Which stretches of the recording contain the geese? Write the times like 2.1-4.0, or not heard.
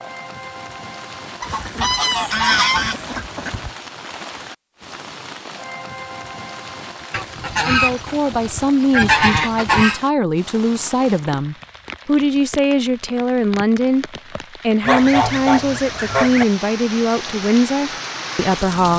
1.4-3.8, 7.1-10.0, 14.8-16.4.